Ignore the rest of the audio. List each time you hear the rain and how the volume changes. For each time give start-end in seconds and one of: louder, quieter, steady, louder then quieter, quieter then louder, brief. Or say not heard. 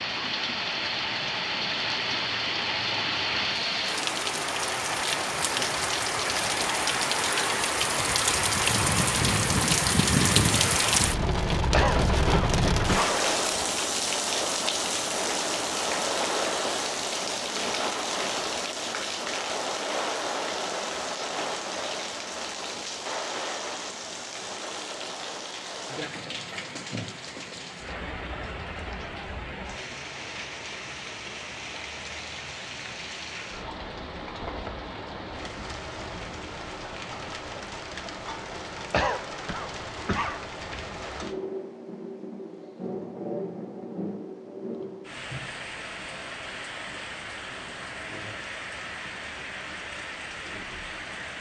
0.0-51.3 quieter.